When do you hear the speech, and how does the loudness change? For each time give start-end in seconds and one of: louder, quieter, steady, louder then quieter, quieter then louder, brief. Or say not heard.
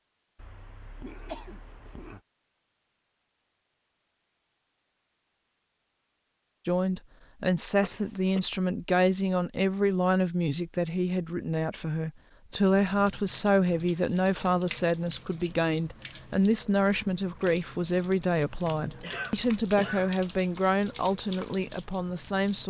6.7-22.6 steady.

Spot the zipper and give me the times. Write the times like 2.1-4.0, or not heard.
not heard.